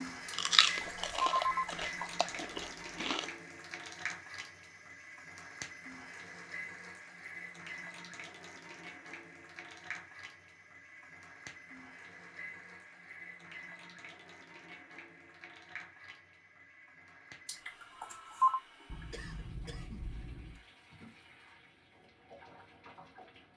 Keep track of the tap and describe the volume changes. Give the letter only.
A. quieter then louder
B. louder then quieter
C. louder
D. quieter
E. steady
D.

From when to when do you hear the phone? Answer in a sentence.
You can hear the phone from 0.2 to 1.6 s and from 17.4 to 18.6 s.